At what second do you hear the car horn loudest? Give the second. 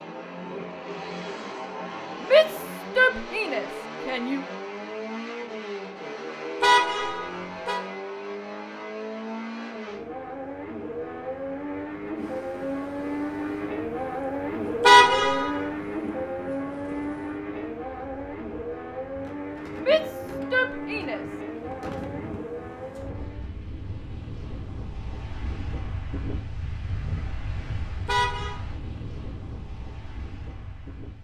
15 s.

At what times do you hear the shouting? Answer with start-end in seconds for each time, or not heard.
2.2-4.4, 19.8-21.2.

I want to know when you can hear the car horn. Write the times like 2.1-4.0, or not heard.
6.6-7.8, 14.8-15.6, 28.1-28.6.